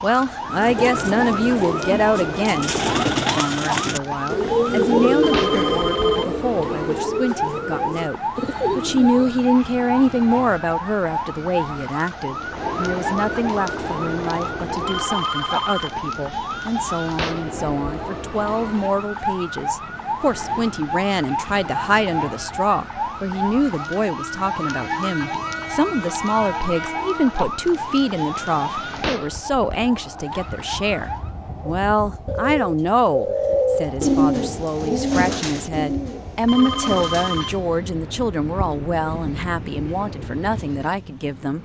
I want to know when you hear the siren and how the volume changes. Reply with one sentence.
The siren can be heard from 0.0 to 31.3 s, at a steady volume.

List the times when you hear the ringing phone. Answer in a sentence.
The ringing phone can be heard from 5.2 to 6.3 s, from 14.8 to 16.0 s and from 36.5 to 37.6 s.